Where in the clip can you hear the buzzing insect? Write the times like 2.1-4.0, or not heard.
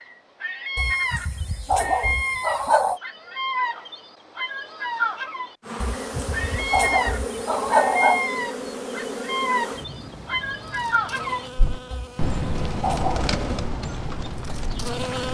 5.6-15.2.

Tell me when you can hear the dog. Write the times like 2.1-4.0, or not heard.
0.8-3.0, 5.8-8.3, 11.9-13.3.